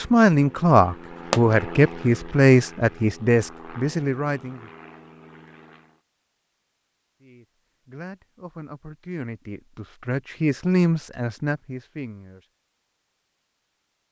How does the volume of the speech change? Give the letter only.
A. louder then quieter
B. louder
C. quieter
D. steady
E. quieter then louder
E.